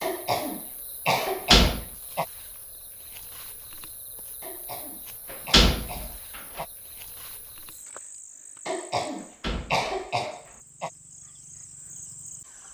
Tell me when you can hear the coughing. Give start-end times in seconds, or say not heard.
0.0-2.2, 4.4-6.7, 8.7-10.9.